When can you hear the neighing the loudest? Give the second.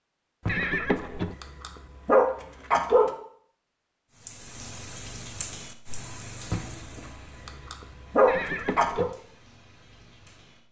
1 s.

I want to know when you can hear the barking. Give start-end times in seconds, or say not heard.
0.5-3.1, 6.5-9.1.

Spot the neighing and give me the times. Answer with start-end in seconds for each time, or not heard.
0.5-1.4, 8.2-9.2.